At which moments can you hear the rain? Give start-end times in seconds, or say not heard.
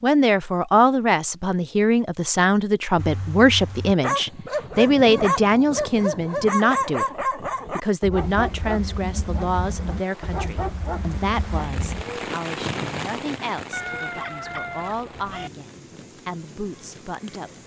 8.1-17.6.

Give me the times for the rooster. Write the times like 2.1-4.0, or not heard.
13.7-15.5.